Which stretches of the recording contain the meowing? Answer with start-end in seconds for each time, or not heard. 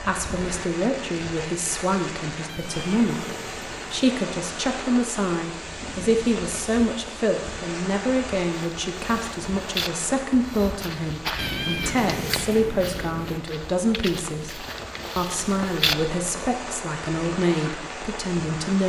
2.5-4.2, 11.3-13.4.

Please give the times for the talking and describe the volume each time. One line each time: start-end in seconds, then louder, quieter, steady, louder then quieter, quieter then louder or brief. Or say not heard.
0.0-18.8 steady.